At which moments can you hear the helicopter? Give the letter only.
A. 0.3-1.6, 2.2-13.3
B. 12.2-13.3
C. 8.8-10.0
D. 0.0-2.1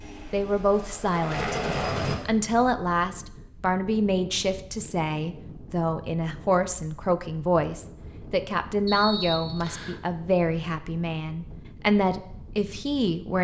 D.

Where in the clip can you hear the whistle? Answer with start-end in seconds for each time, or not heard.
8.8-10.0.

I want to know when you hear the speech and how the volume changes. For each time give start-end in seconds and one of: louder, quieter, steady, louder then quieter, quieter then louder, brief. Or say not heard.
0.3-1.6 brief
2.2-13.3 steady.